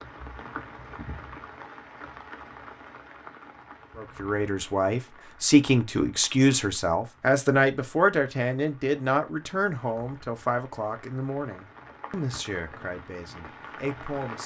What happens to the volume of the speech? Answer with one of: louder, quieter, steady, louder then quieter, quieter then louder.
quieter.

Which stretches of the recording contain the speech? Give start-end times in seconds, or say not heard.
4.0-14.4.